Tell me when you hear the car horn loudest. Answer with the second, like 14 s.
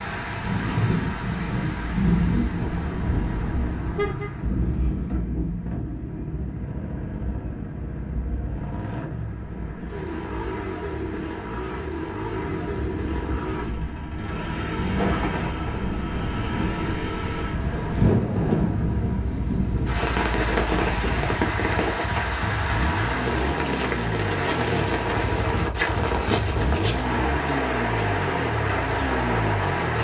4 s.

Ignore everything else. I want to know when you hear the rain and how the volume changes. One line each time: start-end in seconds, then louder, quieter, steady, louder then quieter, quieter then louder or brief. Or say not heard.
0.0-29.9 quieter then louder.